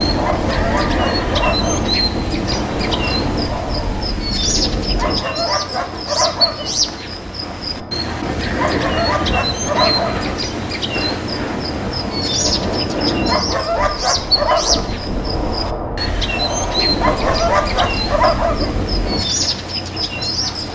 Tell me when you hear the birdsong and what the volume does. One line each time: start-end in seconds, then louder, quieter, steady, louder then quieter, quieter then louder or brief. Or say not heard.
0.0-20.7 steady.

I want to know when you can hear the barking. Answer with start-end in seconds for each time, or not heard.
0.2-1.9, 5.0-6.7, 8.6-10.2, 13.2-14.8, 17.0-18.7.